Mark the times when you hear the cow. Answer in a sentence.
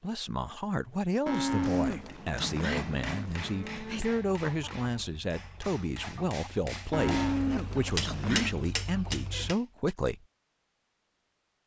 The cow can be heard from 1.2 to 4.0 s and from 6.9 to 8.6 s.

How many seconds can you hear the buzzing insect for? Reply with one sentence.
You can't hear the buzzing insect here.